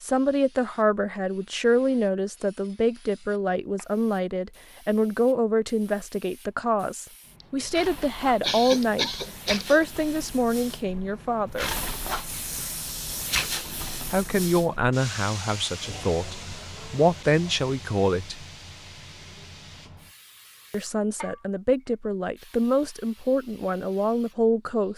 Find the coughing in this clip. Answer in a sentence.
You can hear the coughing from 7.4 to 9.8 s.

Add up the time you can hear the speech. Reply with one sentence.
You can hear the speech for 20 seconds altogether.